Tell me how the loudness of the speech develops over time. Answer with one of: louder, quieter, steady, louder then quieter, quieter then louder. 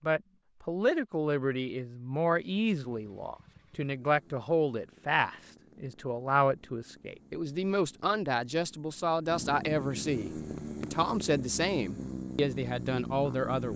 steady.